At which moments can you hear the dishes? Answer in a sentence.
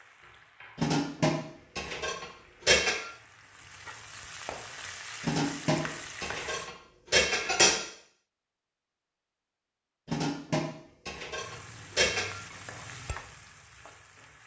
You can hear the dishes from 0.8 to 3.0 s, from 5.2 to 7.8 s and from 10.1 to 12.3 s.